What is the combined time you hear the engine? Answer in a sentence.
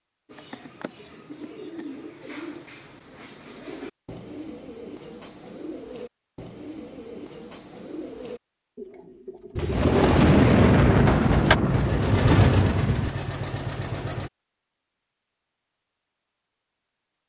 The engine can be heard for 3 seconds in total.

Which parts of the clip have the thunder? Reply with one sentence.
You can hear the thunder from 9.6 to 13.1 s.